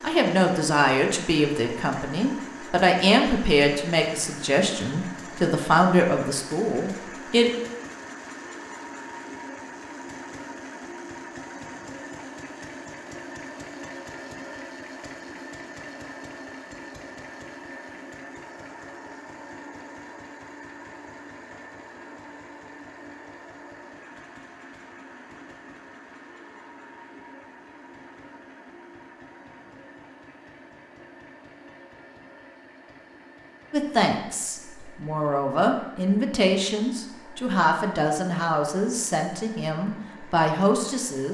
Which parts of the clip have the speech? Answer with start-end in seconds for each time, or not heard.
0.0-7.5, 33.7-41.2.